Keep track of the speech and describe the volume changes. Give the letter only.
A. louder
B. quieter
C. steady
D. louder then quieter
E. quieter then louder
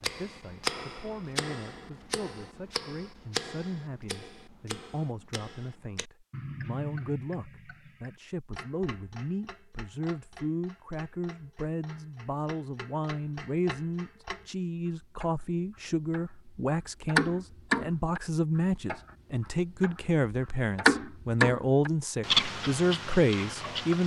A.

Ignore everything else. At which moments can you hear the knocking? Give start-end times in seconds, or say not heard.
not heard.